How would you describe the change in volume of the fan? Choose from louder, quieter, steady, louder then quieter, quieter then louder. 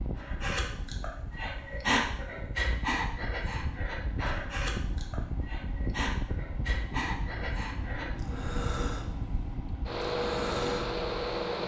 louder.